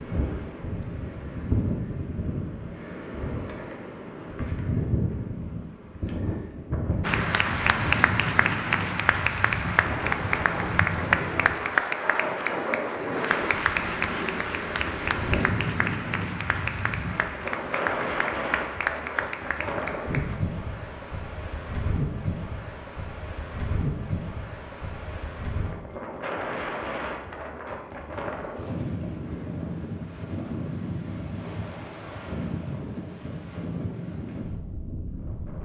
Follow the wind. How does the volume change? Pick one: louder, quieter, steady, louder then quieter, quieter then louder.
steady.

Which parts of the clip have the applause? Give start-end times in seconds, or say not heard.
7.0-20.4.